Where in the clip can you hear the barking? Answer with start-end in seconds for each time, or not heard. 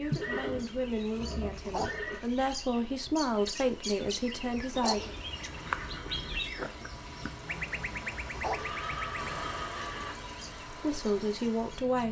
1.6-2.1, 4.7-5.2, 8.3-8.8.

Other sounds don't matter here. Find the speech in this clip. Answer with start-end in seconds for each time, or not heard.
0.0-5.2, 10.7-12.0.